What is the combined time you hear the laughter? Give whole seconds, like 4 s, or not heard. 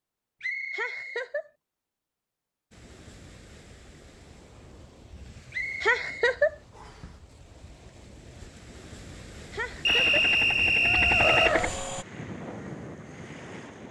2 s.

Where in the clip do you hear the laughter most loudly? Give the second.
6 s.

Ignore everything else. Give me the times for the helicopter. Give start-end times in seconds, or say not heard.
9.8-12.1.